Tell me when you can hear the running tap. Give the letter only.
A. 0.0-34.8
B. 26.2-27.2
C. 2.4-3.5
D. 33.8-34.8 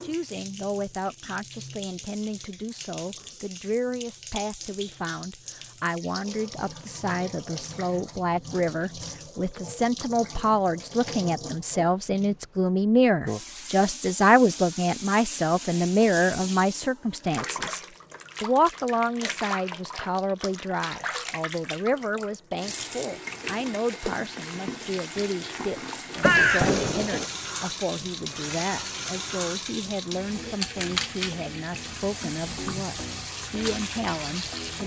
A.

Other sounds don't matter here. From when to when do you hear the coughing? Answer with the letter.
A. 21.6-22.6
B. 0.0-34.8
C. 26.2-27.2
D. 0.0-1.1
C.